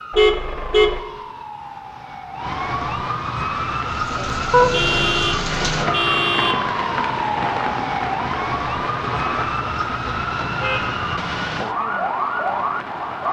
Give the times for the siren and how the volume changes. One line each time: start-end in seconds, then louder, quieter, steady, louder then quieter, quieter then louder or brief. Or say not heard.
0.0-13.2 louder.